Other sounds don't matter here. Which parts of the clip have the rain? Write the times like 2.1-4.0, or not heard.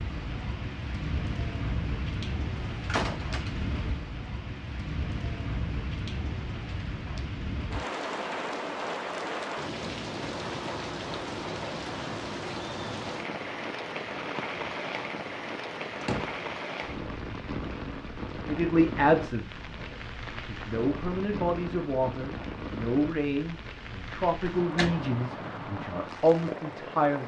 0.0-27.2.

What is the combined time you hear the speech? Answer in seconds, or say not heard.
9 s.